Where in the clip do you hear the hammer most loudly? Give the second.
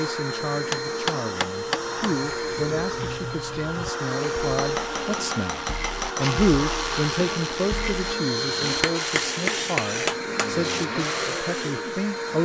10 s.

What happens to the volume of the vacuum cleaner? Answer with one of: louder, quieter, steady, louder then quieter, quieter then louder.
steady.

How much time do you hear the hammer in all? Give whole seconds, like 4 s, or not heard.
5 s.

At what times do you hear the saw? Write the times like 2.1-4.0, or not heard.
not heard.